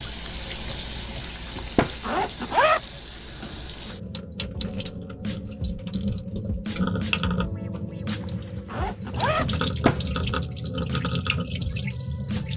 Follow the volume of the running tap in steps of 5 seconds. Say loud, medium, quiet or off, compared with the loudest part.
medium, loud, loud.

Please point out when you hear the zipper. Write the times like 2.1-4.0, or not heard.
1.4-2.8, 8.1-9.5.